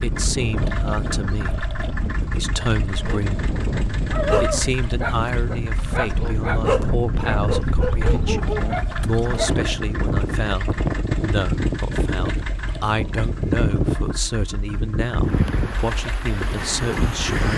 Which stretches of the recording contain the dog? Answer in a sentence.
The dog can be heard from 4.0 to 9.6 s.